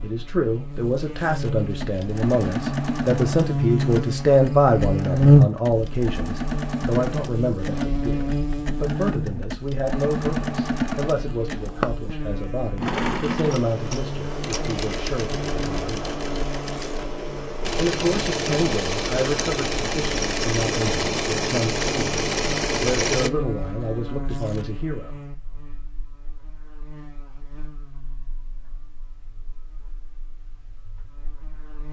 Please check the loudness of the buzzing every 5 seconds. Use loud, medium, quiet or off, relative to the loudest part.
medium, loud, quiet, quiet, quiet, quiet, quiet.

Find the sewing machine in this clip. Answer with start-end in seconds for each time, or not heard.
1.8-23.3.